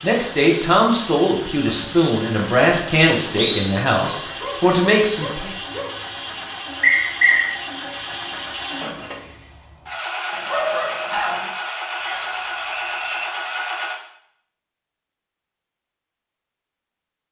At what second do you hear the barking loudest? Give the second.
11 s.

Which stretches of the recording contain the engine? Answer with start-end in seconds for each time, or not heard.
0.0-13.9.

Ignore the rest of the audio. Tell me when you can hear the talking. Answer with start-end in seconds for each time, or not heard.
0.0-5.5.